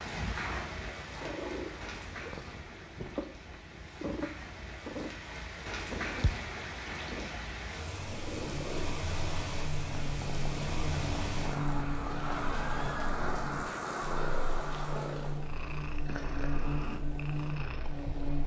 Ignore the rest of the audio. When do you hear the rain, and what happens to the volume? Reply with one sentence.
You can hear the rain from 0.0 to 15.4 s, getting louder.